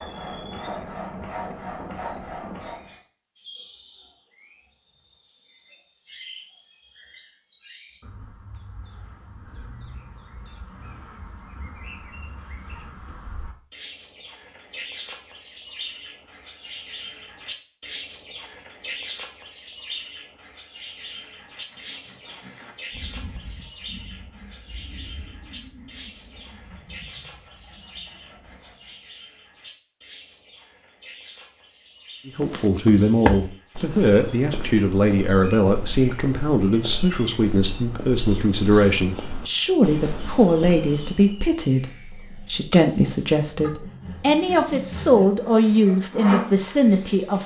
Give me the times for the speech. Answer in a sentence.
You can hear the speech from 32.2 to 47.4 s.